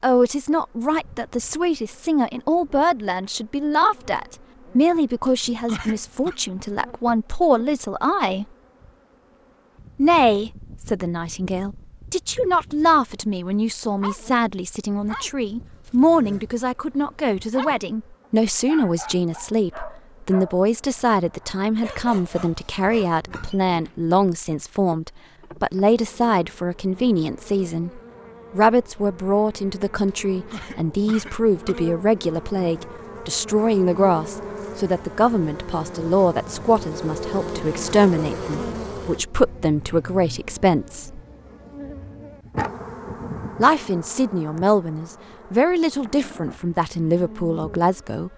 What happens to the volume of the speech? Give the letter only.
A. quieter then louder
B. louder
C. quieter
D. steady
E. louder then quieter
D.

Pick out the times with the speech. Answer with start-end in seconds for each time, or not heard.
0.0-8.4, 9.9-41.2, 43.6-48.3.